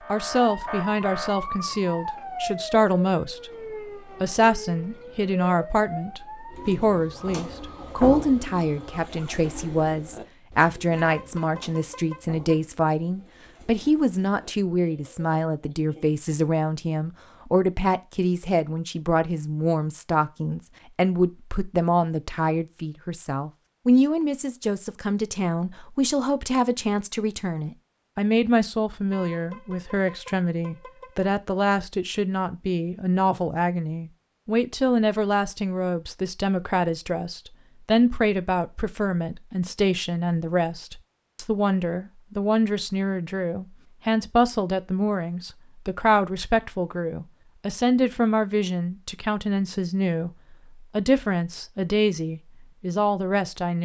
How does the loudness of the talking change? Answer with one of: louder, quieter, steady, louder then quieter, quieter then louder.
steady.